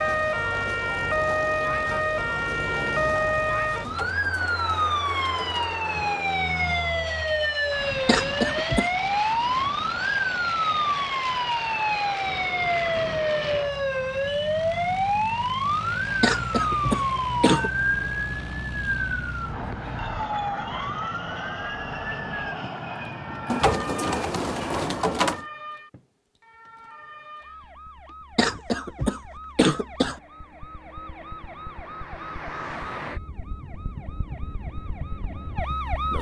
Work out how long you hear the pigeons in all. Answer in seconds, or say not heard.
4 s.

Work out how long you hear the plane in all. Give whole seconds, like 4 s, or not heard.
25 s.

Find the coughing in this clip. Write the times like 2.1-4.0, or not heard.
8.1-8.9, 16.2-17.7, 28.4-30.2.